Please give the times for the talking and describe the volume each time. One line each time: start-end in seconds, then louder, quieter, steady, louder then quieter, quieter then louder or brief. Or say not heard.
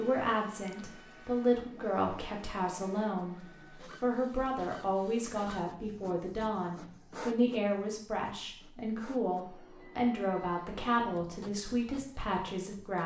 0.0-13.0 steady.